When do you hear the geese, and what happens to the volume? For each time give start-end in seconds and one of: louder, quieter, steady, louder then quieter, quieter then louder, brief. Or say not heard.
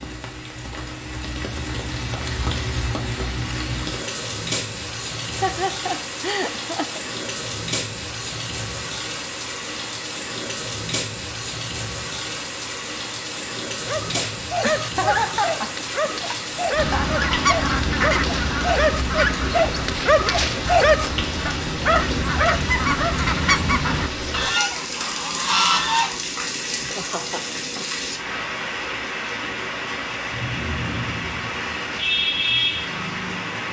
16.8-26.2 quieter then louder.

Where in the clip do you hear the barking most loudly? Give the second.
21 s.